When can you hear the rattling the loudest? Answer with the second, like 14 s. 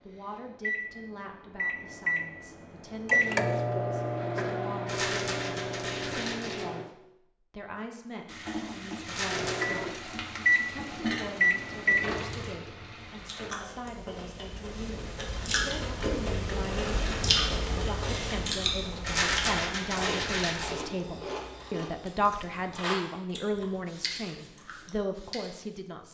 19 s.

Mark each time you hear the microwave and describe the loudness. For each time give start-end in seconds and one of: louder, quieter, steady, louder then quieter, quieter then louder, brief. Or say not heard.
0.1-6.8 louder then quieter
9.3-12.2 brief.